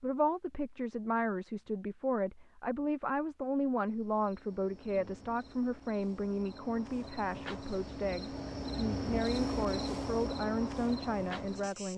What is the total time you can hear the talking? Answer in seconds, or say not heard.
11 s.